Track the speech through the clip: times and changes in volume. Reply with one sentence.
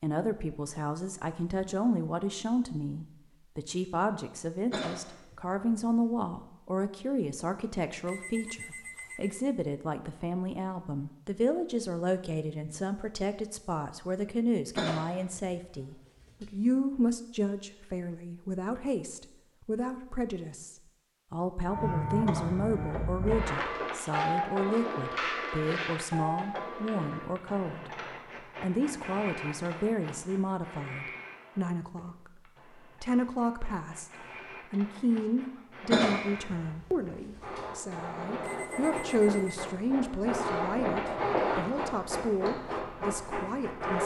You can hear the speech from 0.0 to 27.9 s, at a steady volume; and from 28.6 to 44.0 s, at a steady volume.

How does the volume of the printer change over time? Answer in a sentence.
The volume of the printer goes down, then up.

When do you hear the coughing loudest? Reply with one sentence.
The loudest moment of the coughing is at 36 seconds.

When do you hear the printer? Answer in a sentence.
The printer can be heard from 21.6 to 44.0 s.